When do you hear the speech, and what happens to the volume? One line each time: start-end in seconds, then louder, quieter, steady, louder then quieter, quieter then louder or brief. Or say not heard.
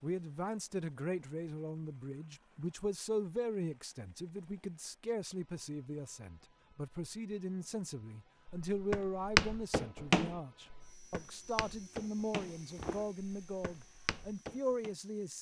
0.0-15.3 steady.